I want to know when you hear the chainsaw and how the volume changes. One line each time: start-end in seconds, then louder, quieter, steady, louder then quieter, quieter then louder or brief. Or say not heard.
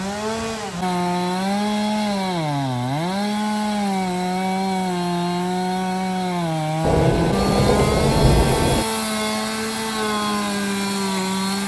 0.0-11.6 steady.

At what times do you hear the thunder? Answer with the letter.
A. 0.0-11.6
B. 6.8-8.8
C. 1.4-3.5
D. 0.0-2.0
B.